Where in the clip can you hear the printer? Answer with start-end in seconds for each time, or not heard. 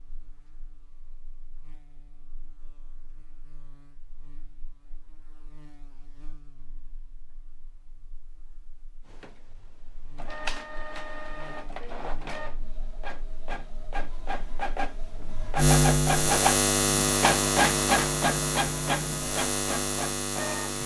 9.1-20.8.